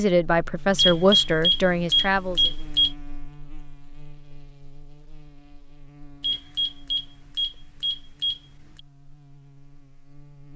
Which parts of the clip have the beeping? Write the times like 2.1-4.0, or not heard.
0.8-3.0, 6.2-8.8.